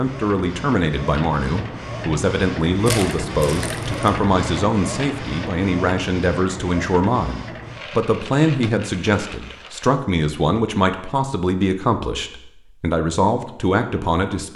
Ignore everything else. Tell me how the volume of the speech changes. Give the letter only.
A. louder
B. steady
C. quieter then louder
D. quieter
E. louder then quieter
B.